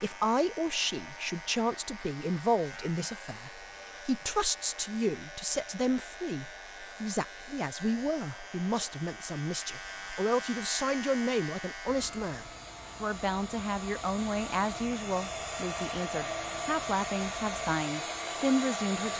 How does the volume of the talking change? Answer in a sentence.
The volume of the talking stays about the same.